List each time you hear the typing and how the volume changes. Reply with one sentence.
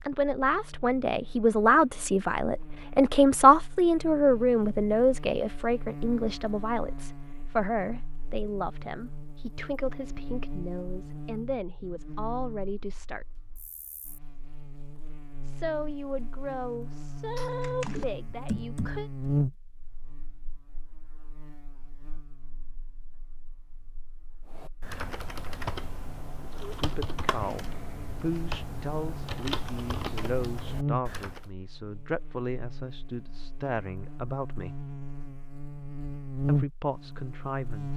You can hear the typing briefly from 17.4 to 19.1 s; and from 24.5 to 31.4 s, at a steady volume.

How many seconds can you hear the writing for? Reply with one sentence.
The writing can't be heard in this clip.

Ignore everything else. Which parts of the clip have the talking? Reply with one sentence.
The talking can be heard from 0.1 to 13.2 s, from 15.4 to 19.1 s, from 26.8 to 34.9 s and from 36.5 to 37.9 s.